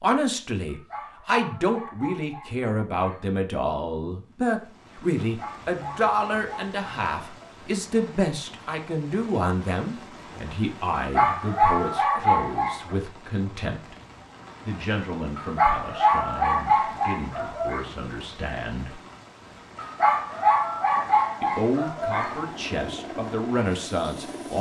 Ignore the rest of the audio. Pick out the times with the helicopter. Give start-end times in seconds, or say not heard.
22.2-24.5.